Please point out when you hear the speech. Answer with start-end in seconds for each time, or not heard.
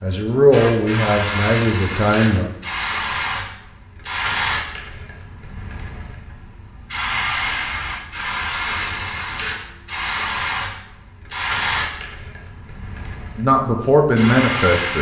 0.0-2.5, 13.3-14.9.